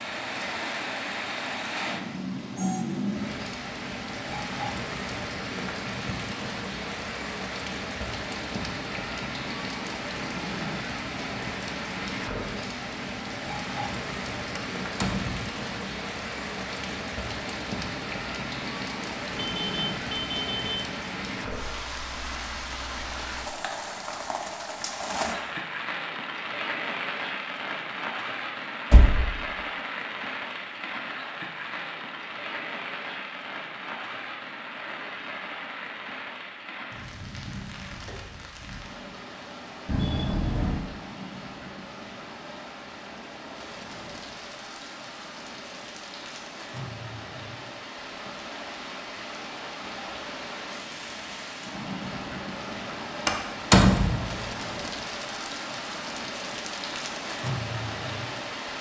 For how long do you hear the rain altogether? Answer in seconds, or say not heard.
59 s.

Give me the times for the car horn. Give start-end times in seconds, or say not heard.
19.4-20.9, 39.9-40.8.